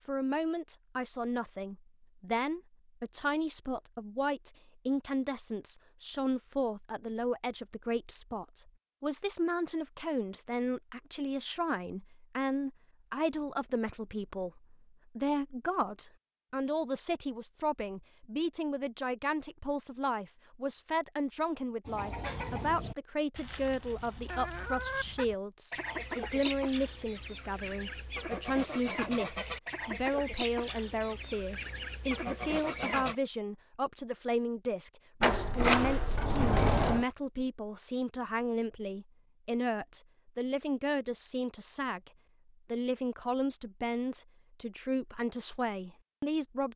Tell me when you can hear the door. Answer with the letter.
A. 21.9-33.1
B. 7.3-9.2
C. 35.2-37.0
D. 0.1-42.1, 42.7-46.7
C.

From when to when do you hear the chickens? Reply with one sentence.
The chickens can be heard from 21.9 to 33.1 s.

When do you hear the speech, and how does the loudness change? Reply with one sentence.
The speech can be heard from 0.1 to 42.1 s, at a steady volume; and from 42.7 to 46.7 s, at a steady volume.